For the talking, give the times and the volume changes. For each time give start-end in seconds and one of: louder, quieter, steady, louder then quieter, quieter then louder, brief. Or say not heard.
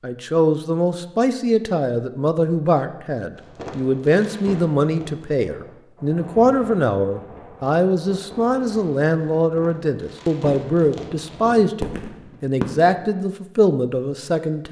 0.0-14.6 steady.